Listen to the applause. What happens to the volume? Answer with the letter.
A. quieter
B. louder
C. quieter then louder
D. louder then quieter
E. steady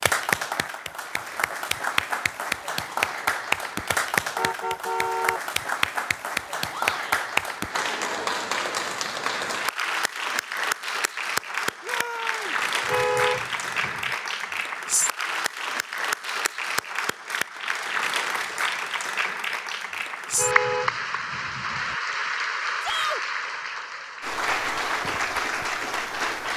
E.